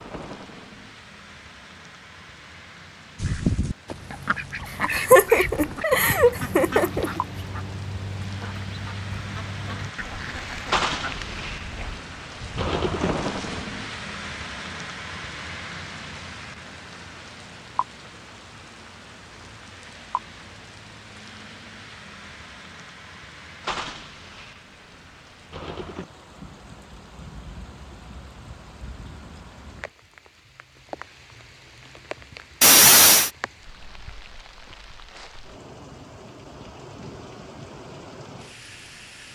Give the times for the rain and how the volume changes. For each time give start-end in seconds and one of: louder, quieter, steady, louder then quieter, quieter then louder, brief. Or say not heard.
0.0-39.3 louder then quieter.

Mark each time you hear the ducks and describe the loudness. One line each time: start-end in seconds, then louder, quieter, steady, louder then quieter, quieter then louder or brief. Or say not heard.
3.1-13.7 quieter.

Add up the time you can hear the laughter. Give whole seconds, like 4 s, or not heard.
3 s.